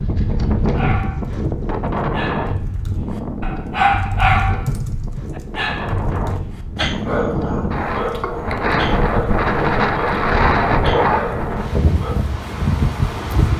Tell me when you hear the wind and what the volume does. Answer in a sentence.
The wind can be heard from 0.0 to 13.5 s, getting quieter then louder.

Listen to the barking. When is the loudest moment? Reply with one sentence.
The volume of the barking peaks at 4 seconds.